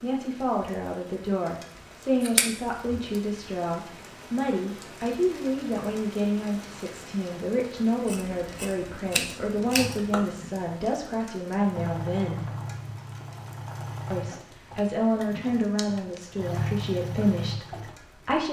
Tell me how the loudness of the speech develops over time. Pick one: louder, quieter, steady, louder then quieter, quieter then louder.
steady.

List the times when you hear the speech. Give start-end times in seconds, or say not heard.
0.0-12.5, 14.1-18.4.